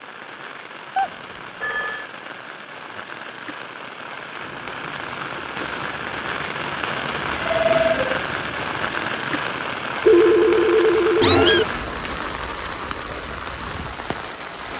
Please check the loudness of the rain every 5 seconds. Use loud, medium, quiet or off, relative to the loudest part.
medium, loud, loud.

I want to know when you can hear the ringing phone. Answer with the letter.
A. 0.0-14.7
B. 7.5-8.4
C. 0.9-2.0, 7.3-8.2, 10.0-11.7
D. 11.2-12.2
C.